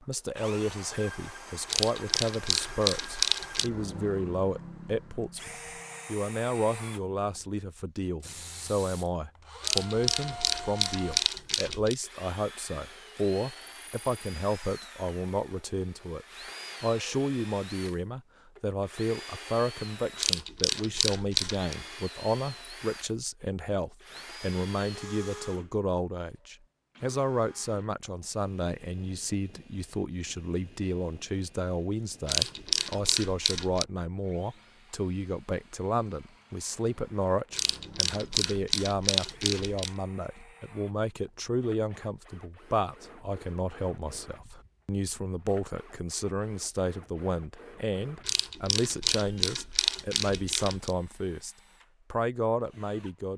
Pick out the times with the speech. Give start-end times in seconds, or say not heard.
0.0-53.3.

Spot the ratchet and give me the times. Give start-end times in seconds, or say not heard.
1.6-3.7, 9.6-11.9, 20.1-21.8, 32.2-33.9, 37.5-39.9, 48.2-51.0.